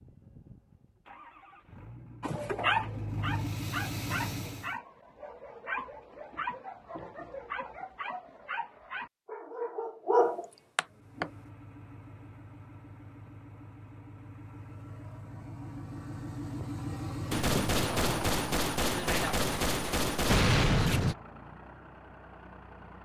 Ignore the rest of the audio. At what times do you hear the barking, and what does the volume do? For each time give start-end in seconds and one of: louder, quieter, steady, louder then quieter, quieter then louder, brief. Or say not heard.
2.2-11.2 quieter then louder.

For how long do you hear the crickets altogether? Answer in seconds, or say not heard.
not heard.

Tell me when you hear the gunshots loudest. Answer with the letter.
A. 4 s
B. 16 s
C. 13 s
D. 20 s
D.